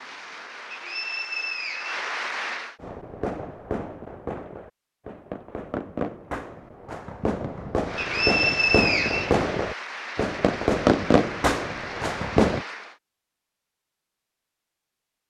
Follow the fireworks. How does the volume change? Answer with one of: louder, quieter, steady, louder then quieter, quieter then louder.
louder.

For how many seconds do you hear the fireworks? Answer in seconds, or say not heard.
10 s.